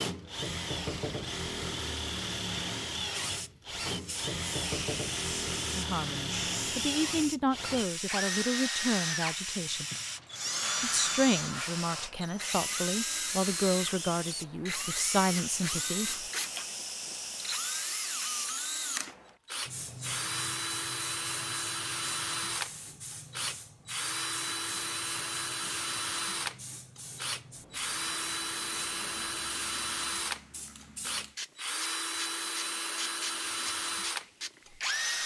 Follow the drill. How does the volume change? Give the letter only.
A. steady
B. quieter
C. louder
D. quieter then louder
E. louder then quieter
A.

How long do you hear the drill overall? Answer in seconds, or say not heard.
35 s.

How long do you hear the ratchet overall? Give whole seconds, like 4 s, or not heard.
not heard.